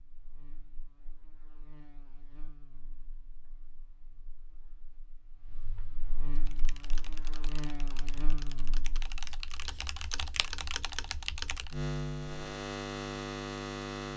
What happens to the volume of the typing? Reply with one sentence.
The loudness of the typing goes up.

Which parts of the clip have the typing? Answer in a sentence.
You can hear the typing from 6.3 to 11.8 s.